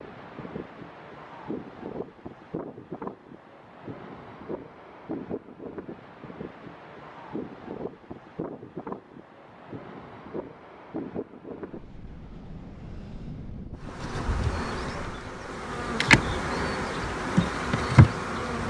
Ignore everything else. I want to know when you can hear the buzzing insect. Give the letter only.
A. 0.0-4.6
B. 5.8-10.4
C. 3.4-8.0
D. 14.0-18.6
D.